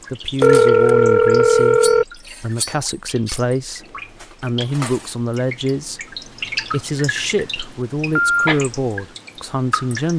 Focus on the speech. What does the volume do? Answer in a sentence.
The loudness of the speech stays about the same.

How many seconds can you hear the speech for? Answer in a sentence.
The speech can be heard for 10 seconds in total.